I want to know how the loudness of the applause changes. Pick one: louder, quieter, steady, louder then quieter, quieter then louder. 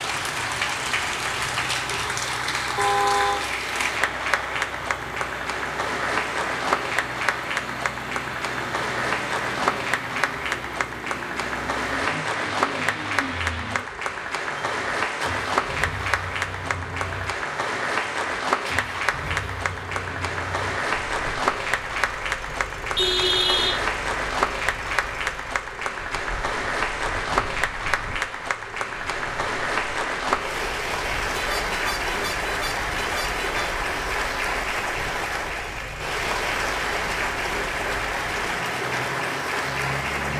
steady.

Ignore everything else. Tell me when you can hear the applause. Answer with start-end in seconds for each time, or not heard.
0.0-40.3.